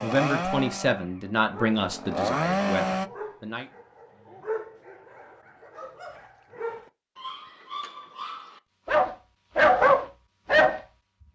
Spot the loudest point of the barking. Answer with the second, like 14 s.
10 s.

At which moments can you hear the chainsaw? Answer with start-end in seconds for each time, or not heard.
0.0-3.1.